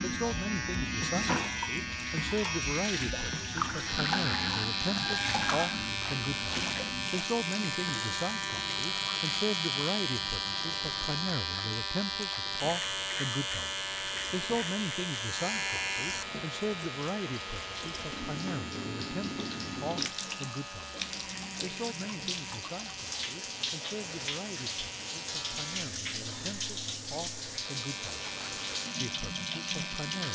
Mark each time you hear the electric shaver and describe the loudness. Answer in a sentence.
You can hear the electric shaver from 0.0 to 30.2 s, getting quieter.